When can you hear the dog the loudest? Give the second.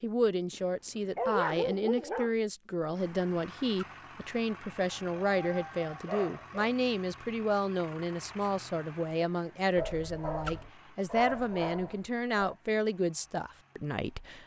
1 s.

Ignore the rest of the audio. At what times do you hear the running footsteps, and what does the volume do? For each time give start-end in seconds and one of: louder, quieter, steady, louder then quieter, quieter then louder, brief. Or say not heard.
not heard.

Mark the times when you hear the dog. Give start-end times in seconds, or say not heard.
0.5-2.4, 4.9-6.5, 9.8-12.6.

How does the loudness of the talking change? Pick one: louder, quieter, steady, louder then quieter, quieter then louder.
steady.